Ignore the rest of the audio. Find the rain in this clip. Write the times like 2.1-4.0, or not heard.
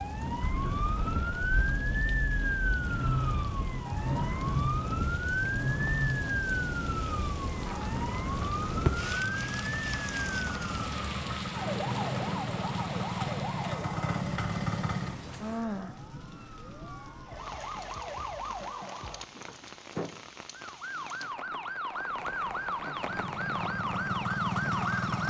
0.0-25.2.